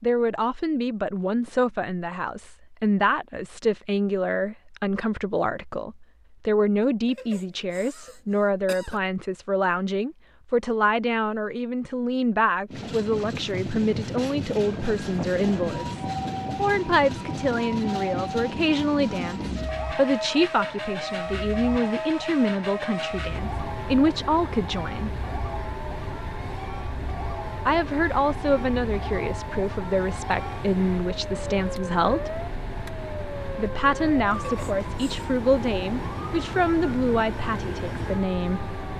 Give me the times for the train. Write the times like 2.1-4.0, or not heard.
12.7-38.9.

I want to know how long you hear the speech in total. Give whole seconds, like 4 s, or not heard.
35 s.